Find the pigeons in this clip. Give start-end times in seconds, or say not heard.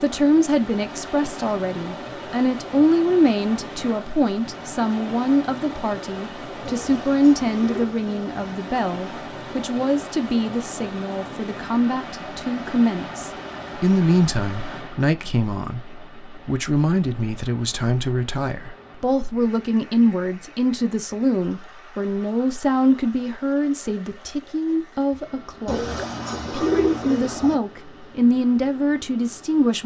6.7-8.3, 25.6-27.6.